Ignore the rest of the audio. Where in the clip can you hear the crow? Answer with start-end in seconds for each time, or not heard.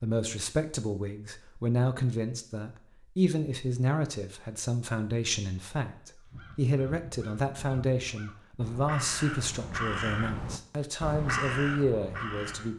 6.2-12.7.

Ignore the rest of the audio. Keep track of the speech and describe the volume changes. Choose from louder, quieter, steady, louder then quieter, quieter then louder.
steady.